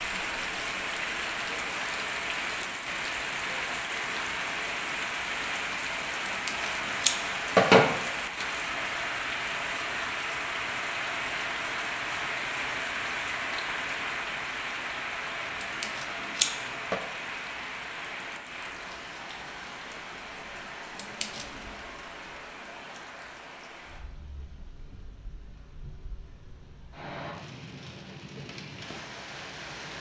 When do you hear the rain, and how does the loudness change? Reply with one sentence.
The rain can be heard from 0.0 to 29.9 s, getting quieter.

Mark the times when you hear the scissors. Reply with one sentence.
The scissors can be heard from 6.2 to 7.9 s, from 15.6 to 17.0 s and from 20.9 to 21.4 s.